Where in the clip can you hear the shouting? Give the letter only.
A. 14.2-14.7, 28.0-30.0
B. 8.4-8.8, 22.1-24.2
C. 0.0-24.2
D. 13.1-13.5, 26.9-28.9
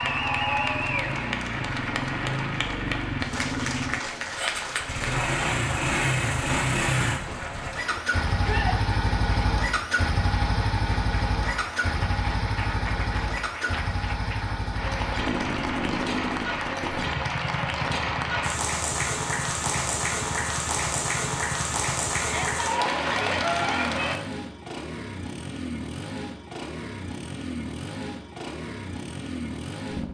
B.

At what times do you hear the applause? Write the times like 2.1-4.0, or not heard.
0.0-24.2.